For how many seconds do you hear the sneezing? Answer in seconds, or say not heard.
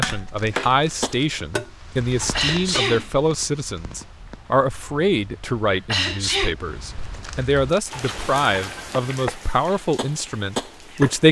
2 s.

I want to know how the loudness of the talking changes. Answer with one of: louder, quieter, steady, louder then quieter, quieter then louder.
steady.